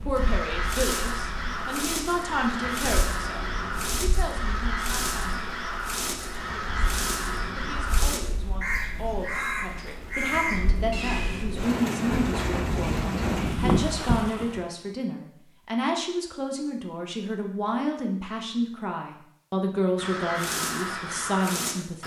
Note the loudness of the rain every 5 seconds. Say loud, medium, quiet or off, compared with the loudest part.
quiet, quiet, loud, off, off.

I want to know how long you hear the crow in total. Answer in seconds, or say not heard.
13 s.